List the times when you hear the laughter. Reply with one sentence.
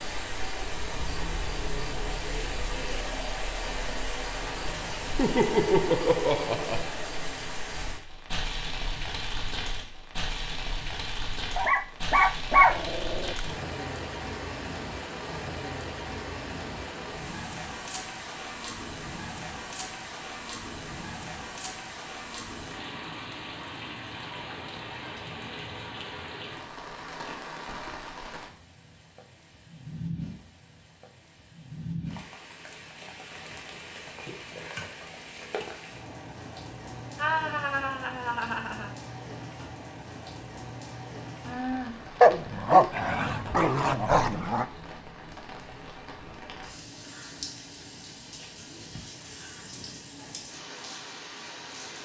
You can hear the laughter from 5.1 to 6.8 s and from 37.1 to 39.0 s.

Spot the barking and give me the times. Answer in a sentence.
The barking can be heard from 11.6 to 13.4 s and from 42.2 to 44.6 s.